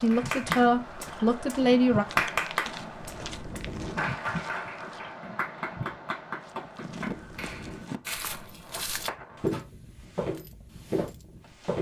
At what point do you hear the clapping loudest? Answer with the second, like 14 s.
2 s.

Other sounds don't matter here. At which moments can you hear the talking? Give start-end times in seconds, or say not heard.
0.0-2.0.